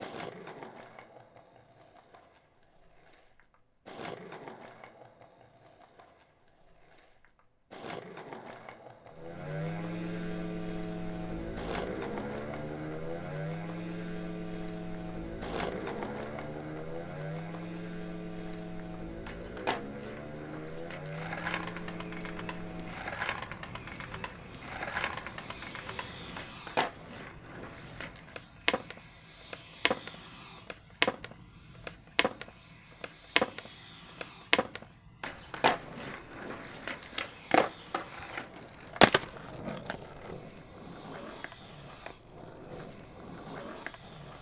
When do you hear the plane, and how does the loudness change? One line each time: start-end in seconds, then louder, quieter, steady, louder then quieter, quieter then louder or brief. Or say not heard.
9.1-44.3 quieter.